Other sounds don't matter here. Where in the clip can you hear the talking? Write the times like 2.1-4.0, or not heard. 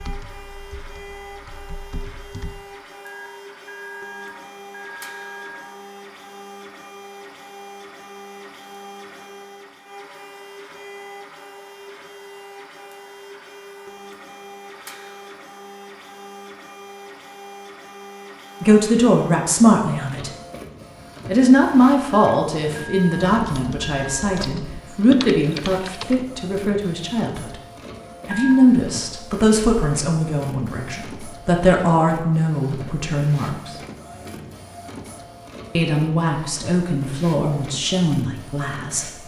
18.6-20.3, 21.2-27.6, 28.2-33.8, 35.8-39.0.